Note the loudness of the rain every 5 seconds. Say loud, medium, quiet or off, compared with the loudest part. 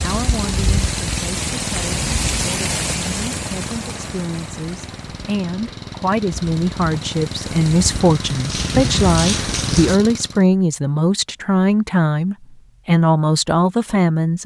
loud, loud, off.